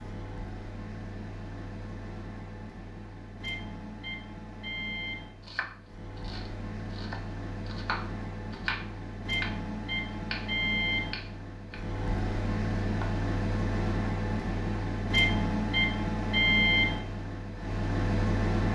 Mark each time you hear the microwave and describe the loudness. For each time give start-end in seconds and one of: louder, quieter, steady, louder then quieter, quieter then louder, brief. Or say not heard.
0.0-18.6 louder.